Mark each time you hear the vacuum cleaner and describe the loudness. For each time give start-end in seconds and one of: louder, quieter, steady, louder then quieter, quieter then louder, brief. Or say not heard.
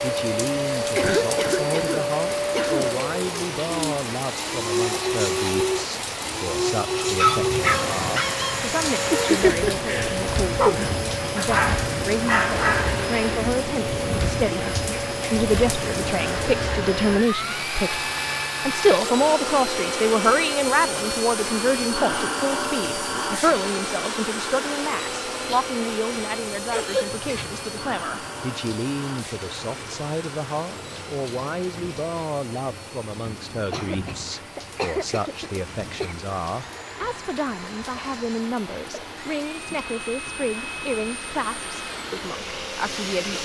0.0-43.4 quieter.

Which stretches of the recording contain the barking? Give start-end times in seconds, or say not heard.
7.0-13.1.